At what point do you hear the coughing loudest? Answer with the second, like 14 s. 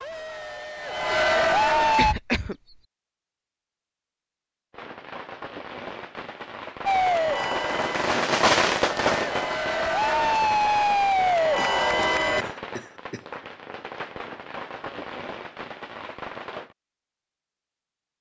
2 s.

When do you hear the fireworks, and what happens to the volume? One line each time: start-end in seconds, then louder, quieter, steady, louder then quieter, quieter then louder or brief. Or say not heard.
4.7-16.8 louder then quieter.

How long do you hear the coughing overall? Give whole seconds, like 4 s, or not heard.
3 s.